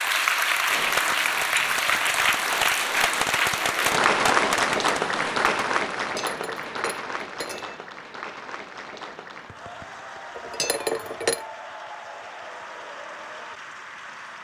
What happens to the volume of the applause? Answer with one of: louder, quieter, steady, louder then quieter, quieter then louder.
quieter.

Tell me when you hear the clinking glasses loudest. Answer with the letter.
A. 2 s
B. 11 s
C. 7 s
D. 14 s
B.